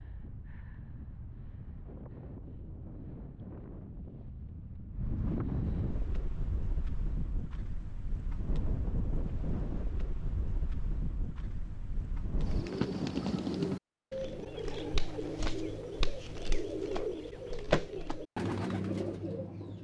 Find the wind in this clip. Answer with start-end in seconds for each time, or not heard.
0.0-12.7.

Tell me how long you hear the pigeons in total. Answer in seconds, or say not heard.
7 s.